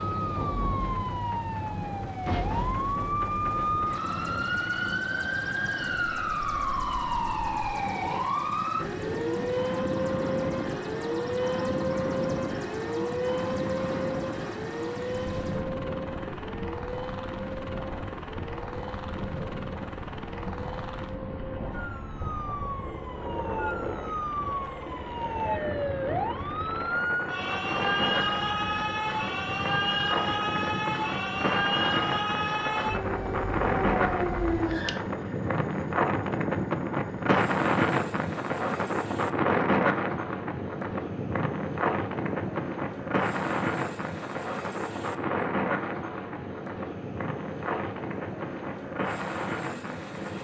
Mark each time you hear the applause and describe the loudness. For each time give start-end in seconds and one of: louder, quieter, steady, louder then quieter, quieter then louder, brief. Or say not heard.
not heard.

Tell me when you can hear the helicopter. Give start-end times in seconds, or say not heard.
0.0-50.4.